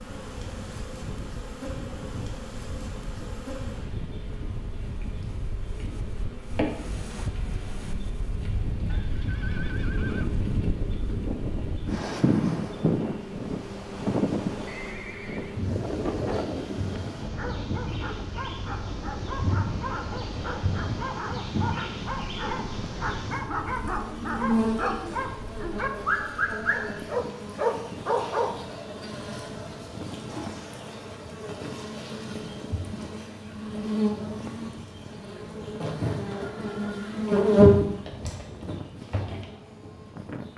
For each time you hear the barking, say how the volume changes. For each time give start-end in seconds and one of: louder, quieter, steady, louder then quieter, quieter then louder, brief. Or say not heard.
17.4-28.5 louder.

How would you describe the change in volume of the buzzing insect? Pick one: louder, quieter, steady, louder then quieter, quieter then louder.
louder.